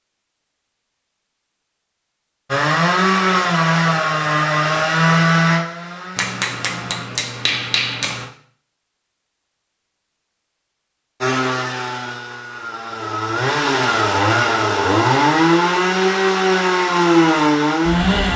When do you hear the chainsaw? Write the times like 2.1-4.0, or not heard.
2.5-7.0, 11.2-18.3.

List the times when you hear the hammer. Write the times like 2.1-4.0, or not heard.
6.2-8.3.